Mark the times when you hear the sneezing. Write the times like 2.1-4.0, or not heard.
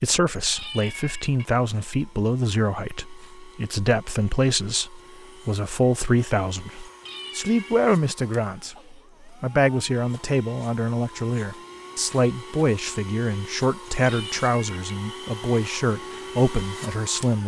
8.8-9.3.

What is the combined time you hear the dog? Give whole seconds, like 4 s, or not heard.
not heard.